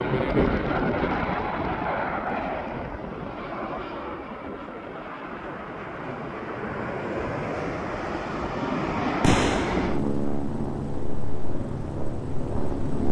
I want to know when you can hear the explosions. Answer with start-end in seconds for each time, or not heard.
9.2-9.9.